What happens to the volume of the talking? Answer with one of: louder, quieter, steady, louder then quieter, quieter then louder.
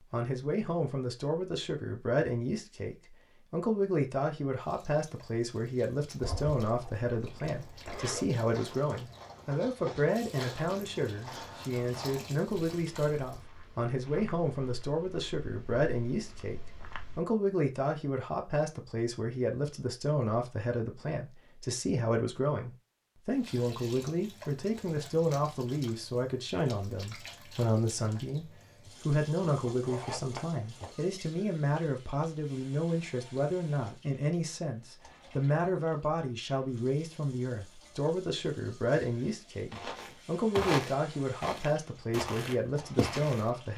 steady.